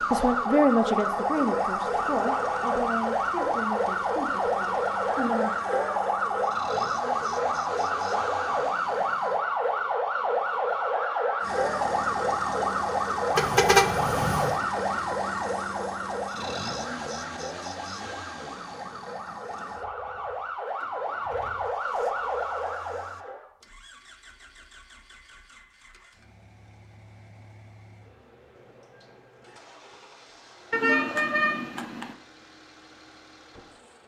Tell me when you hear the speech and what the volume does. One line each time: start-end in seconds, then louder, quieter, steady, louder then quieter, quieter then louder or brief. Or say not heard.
0.1-5.5 quieter.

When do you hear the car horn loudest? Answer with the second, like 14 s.
14 s.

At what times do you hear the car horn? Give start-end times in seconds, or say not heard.
13.3-14.6, 30.7-32.1.